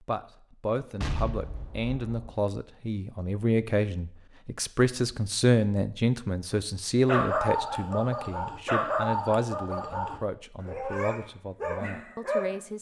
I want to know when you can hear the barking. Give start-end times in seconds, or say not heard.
7.0-12.6.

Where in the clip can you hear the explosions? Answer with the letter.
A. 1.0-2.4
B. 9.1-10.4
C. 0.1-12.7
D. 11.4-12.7
A.